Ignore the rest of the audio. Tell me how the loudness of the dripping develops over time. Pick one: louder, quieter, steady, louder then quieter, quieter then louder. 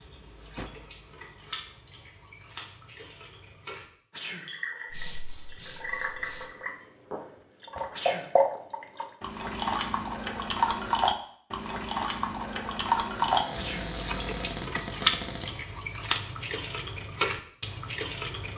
louder.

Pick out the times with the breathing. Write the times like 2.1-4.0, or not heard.
4.9-6.5.